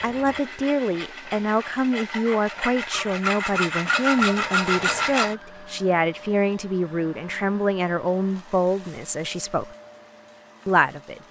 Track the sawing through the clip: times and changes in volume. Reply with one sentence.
The sawing can be heard from 0.0 to 5.3 s, getting louder.